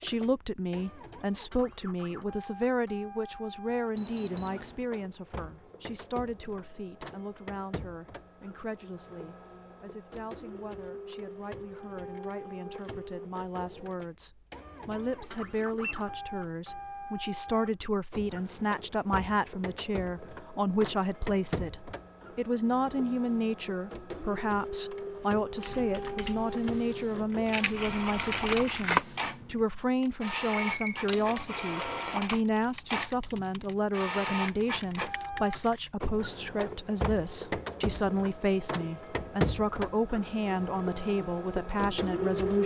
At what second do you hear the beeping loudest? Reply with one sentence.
The volume of the beeping peaks at 31 seconds.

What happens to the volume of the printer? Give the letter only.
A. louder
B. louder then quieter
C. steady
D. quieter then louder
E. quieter
A.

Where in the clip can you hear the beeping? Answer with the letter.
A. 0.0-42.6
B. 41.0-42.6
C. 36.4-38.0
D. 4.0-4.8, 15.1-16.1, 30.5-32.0
D.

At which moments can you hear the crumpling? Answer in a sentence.
You can hear the crumpling from 27.4 to 29.1 s.